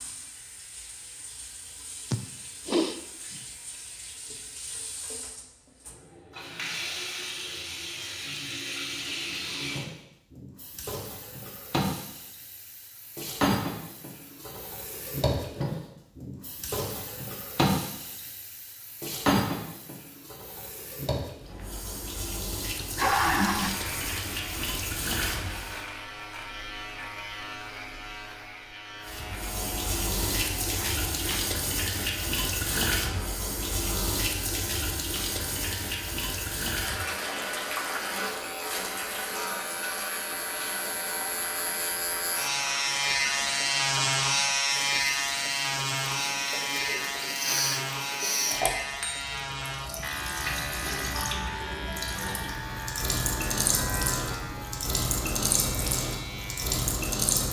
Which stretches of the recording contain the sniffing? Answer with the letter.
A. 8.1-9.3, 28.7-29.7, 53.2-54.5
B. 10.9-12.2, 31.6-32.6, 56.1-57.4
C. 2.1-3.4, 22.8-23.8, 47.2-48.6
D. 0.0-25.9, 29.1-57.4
C.